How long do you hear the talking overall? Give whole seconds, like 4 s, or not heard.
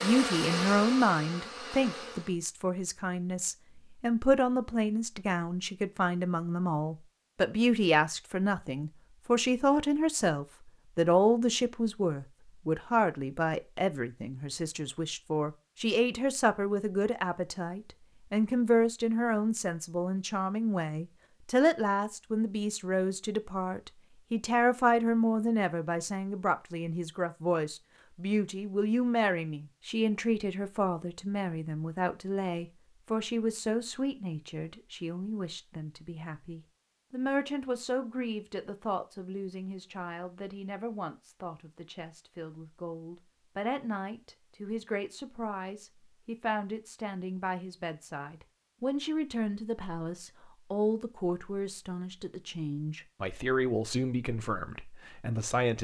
56 s.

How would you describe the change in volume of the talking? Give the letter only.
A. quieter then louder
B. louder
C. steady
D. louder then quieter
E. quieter
E.